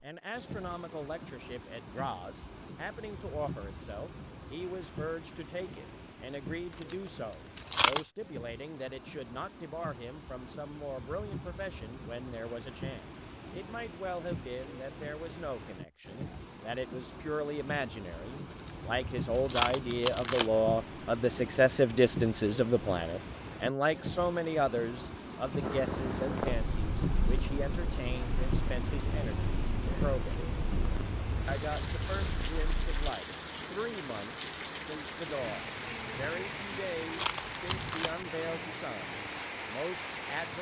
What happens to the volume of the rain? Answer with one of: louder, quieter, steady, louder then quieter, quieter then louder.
louder.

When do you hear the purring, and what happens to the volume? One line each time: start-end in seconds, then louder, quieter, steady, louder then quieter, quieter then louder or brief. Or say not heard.
25.6-33.1 quieter.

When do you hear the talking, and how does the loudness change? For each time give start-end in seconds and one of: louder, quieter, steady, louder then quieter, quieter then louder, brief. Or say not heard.
0.0-30.4 louder then quieter
31.4-40.5 steady.